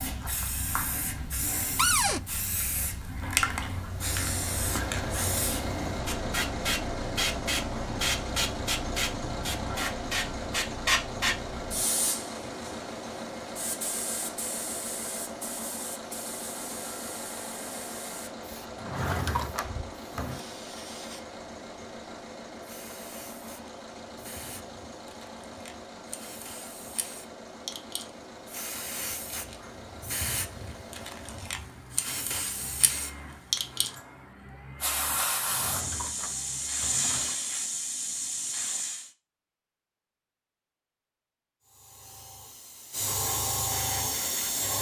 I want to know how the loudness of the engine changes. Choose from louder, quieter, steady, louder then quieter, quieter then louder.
quieter.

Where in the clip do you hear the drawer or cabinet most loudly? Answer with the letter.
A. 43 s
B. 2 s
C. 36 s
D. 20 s
B.